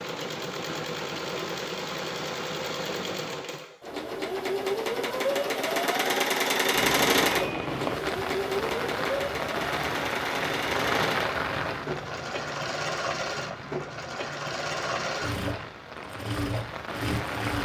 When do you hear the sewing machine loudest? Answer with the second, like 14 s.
7 s.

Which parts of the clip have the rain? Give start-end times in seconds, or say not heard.
6.7-17.6.